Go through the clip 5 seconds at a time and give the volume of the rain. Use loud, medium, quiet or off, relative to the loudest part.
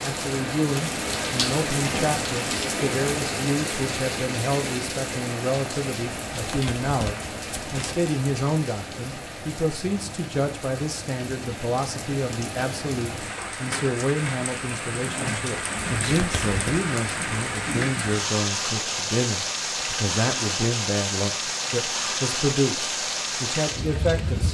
loud, medium, medium, loud, loud.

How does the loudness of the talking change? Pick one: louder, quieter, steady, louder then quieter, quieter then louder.
steady.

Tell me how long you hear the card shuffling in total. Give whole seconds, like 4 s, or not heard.
3 s.